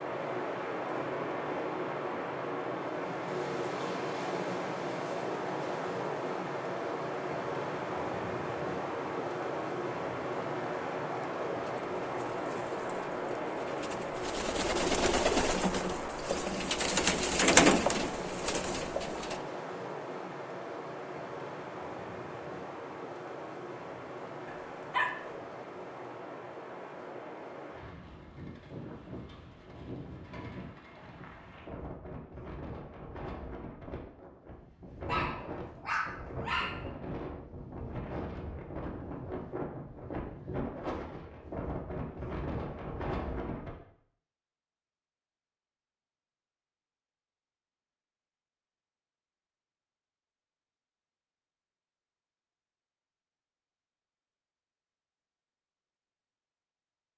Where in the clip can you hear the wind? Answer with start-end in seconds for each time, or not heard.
0.0-43.8.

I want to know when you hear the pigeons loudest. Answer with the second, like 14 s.
18 s.